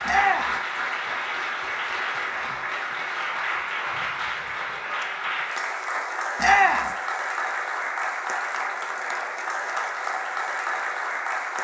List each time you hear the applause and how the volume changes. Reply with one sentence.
The applause can be heard from 0.0 to 11.6 s, at a steady volume.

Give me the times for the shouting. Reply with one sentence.
The shouting can be heard from 0.1 to 0.6 s and from 6.3 to 7.0 s.